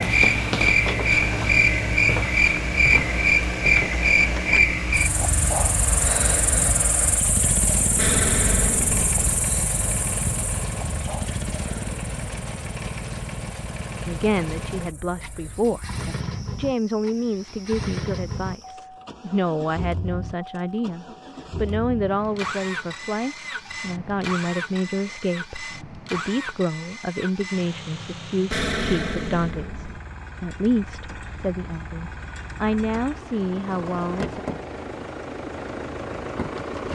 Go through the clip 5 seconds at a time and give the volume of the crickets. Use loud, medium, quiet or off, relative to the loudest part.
loud, medium, quiet, quiet, off, off, off, off.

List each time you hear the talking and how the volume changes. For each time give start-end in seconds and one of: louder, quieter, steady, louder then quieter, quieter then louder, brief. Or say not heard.
14.1-15.9 brief
16.6-34.4 steady.